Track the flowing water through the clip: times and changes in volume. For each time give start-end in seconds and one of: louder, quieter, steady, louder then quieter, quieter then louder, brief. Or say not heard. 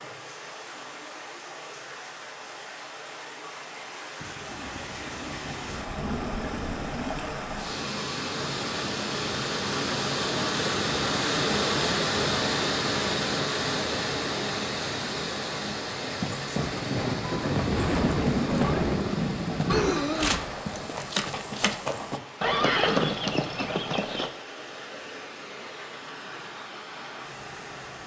0.0-28.0 louder then quieter.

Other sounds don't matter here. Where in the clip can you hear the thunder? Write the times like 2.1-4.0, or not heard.
4.2-7.2, 16.6-20.0.